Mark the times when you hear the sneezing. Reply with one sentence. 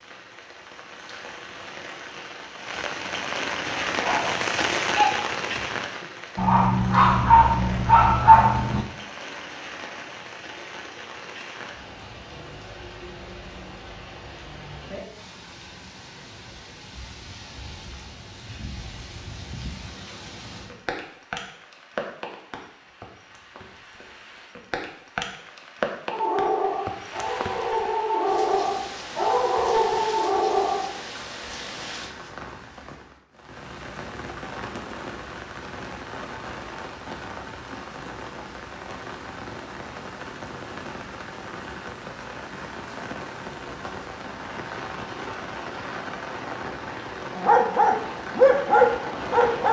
You can't hear the sneezing here.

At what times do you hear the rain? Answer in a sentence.
The rain can be heard from 0.0 to 49.6 s.